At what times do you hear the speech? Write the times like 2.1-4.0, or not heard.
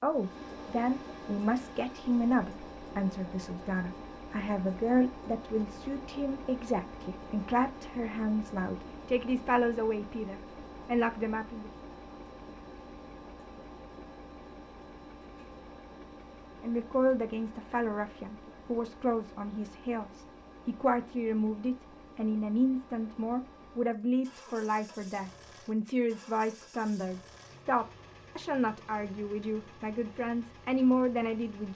0.0-11.7, 16.6-31.7.